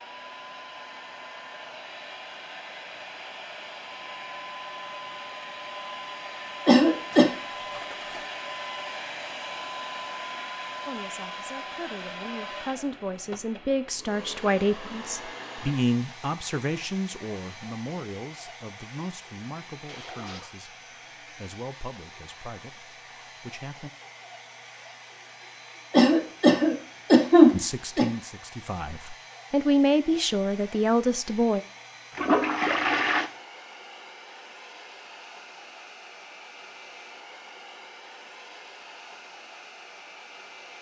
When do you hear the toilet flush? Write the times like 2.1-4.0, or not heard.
7.1-8.3, 19.9-20.6, 32.1-33.3.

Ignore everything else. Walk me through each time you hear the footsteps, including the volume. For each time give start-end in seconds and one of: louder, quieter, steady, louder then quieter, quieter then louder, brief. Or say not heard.
not heard.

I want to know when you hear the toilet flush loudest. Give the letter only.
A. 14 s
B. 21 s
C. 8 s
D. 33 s
D.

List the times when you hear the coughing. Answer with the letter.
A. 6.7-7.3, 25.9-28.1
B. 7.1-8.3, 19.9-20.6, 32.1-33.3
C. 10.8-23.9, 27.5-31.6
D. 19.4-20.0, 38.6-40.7
A.